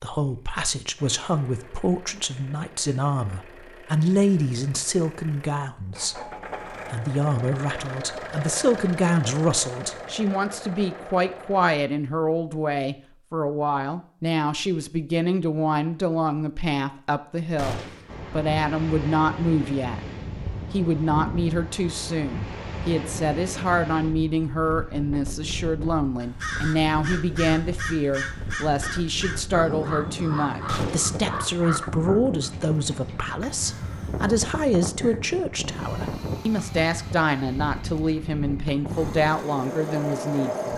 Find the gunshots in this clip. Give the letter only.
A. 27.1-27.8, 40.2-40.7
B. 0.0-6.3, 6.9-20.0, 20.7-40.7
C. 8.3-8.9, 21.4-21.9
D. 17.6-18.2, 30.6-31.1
D.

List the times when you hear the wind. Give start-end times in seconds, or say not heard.
18.1-40.7.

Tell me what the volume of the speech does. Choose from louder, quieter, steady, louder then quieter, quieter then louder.
steady.